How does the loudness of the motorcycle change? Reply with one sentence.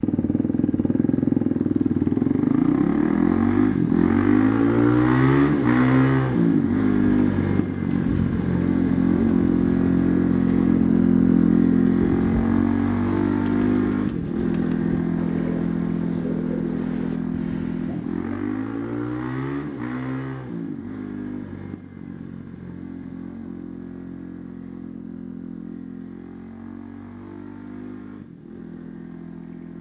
The loudness of the motorcycle goes down.